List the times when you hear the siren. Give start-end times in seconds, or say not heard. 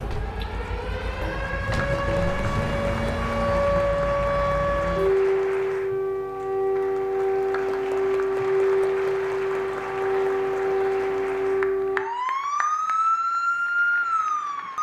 0.0-14.7.